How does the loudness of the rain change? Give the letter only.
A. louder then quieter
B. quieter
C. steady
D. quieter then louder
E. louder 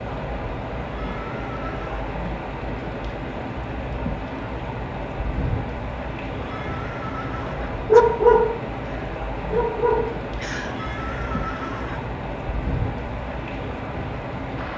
C.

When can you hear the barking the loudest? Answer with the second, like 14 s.
8 s.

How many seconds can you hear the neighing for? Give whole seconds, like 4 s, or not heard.
4 s.